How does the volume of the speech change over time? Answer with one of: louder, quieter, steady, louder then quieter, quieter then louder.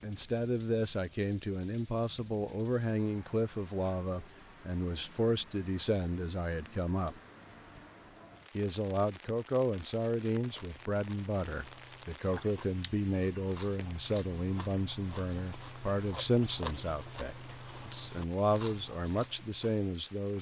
steady.